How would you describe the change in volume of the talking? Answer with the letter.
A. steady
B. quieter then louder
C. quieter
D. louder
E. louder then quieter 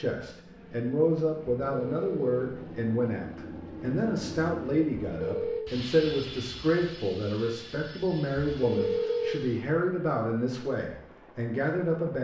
A.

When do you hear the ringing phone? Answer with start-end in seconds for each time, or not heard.
1.6-2.5, 5.0-5.7, 8.4-9.4.